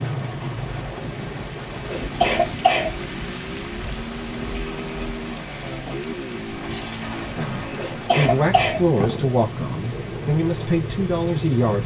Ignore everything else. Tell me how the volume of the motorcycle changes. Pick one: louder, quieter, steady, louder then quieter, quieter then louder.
steady.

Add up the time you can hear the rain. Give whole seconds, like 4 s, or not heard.
12 s.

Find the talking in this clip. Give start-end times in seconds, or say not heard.
7.3-11.8.